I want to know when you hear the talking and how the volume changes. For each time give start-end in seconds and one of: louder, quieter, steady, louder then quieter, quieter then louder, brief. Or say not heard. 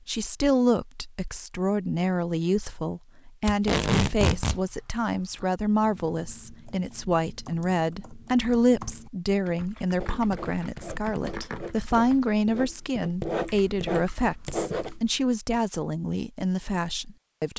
0.1-17.5 steady.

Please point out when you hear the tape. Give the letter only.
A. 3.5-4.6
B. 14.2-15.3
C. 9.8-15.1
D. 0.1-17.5
A.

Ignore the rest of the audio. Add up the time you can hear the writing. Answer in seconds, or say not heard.
5 s.